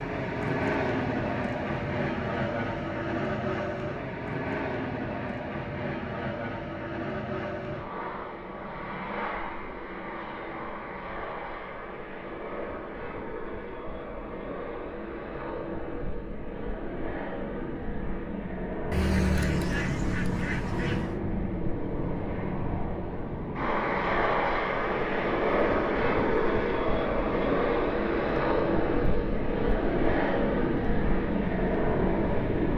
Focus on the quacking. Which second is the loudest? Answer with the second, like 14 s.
19 s.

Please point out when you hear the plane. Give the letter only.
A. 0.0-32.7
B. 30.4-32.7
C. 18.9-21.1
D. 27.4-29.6
A.